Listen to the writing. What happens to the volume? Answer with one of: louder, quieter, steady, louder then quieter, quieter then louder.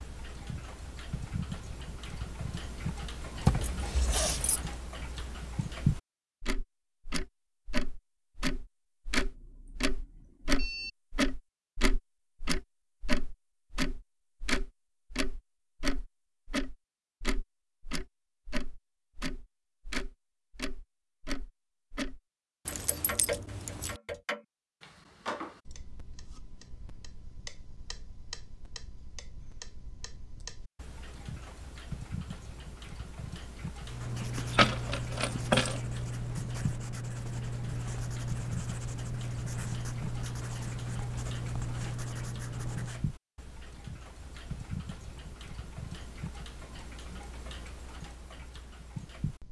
steady.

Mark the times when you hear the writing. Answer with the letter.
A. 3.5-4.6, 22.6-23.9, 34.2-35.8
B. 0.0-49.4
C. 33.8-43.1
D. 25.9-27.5
C.